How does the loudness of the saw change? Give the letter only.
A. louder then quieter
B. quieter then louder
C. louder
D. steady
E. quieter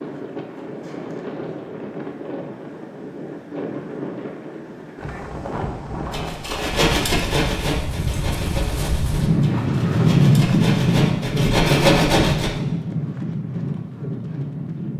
B.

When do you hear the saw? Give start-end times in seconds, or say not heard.
6.1-12.6.